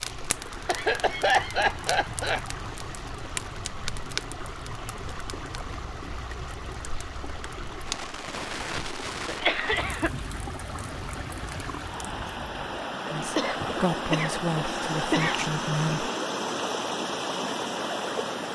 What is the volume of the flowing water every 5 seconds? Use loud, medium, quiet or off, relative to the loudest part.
medium, medium, loud, loud.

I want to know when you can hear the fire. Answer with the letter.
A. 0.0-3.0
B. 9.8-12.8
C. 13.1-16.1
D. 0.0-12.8
D.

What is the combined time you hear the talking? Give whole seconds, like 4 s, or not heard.
3 s.